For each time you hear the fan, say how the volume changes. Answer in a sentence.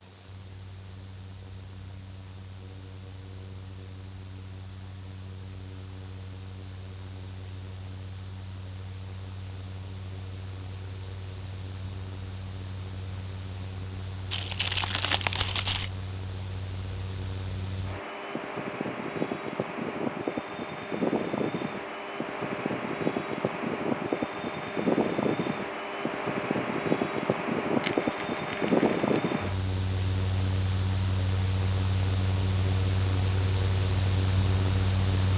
You can hear the fan from 0.0 to 35.3 s, getting louder.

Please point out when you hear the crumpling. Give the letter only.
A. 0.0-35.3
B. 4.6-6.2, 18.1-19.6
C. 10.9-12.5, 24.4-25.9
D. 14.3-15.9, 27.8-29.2
D.